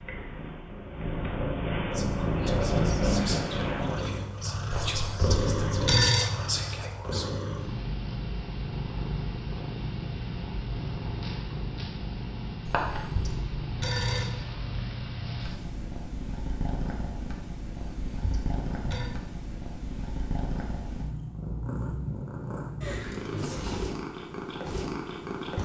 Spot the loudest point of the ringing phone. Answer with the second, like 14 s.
6 s.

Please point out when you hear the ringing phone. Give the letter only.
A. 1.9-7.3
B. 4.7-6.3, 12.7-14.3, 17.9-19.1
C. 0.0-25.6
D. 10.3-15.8
B.